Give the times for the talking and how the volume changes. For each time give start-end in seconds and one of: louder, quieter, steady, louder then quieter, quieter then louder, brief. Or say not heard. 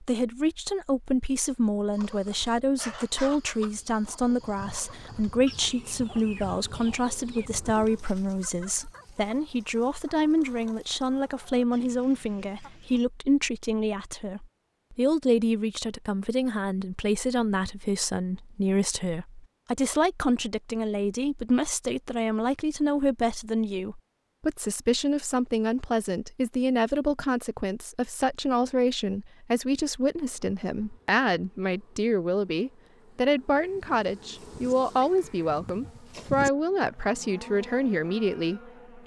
0.0-39.0 steady.